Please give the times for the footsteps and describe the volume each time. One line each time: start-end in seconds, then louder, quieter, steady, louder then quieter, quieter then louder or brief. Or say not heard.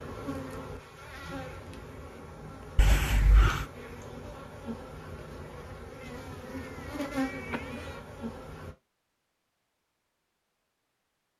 not heard.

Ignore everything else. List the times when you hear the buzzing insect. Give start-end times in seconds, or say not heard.
0.0-8.8.